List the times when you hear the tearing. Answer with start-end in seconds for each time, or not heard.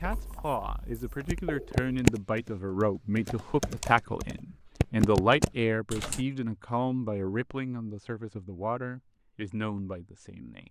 not heard.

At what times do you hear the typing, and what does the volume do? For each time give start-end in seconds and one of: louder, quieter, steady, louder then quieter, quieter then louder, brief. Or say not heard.
1.2-6.2 quieter then louder.